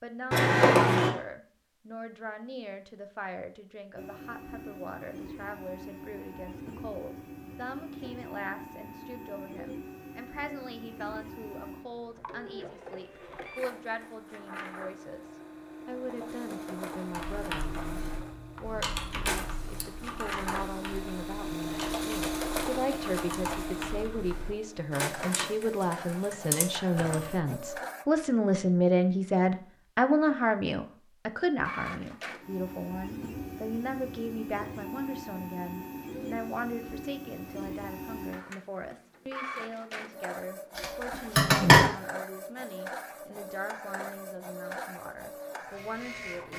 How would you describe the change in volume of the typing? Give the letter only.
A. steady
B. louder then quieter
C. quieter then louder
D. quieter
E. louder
A.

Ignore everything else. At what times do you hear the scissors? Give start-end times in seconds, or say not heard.
0.3-1.1, 17.9-19.9, 40.8-41.9.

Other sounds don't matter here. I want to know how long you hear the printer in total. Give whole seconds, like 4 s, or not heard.
39 s.